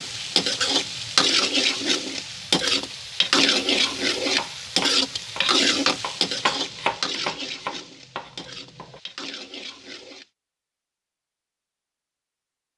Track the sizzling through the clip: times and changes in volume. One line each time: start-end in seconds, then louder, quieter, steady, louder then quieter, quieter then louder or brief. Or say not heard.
0.0-10.2 quieter.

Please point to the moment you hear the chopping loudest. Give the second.
7 s.